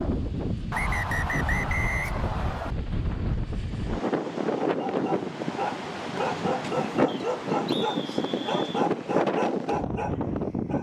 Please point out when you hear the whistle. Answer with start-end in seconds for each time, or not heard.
0.7-2.8, 7.0-8.8.